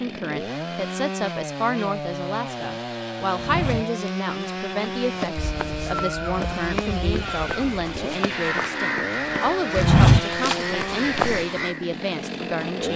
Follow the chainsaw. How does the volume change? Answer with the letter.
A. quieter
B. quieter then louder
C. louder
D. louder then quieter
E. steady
E.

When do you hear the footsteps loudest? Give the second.
10 s.